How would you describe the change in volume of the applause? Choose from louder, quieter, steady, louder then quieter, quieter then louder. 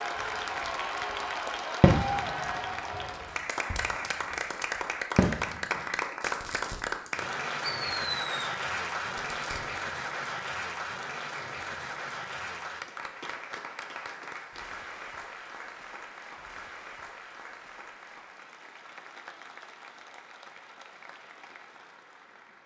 quieter.